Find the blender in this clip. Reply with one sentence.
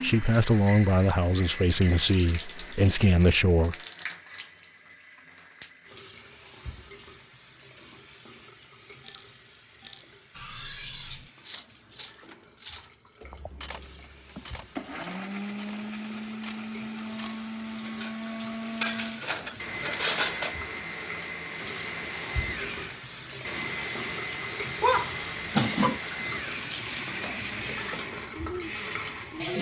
You can hear the blender from 12.2 to 29.5 s.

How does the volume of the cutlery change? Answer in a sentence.
The loudness of the cutlery goes down, then up.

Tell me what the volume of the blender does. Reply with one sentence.
The volume of the blender stays about the same.